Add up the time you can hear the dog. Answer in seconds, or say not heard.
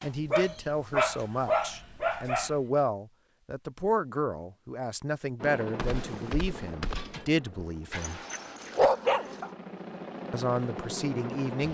4 s.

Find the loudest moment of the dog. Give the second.
9 s.